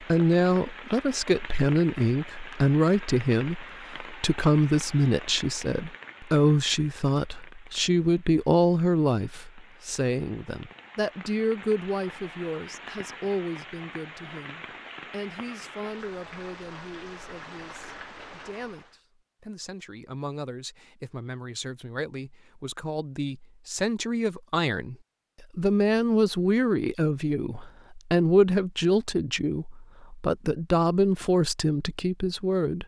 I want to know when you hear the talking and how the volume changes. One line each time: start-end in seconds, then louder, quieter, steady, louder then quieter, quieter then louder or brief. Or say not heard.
0.1-32.8 quieter then louder.